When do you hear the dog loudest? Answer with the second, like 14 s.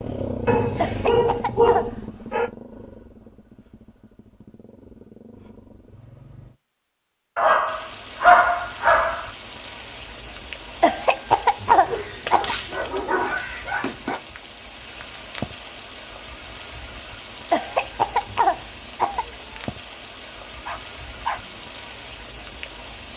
8 s.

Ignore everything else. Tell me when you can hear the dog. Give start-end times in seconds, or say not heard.
0.5-2.5, 7.3-9.3, 11.7-14.2, 20.6-21.6.